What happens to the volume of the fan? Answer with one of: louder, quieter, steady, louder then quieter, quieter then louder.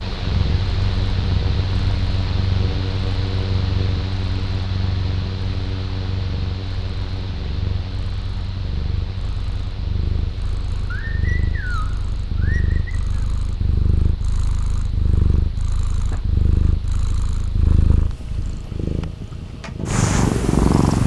quieter.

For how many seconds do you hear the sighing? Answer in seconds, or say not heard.
2 s.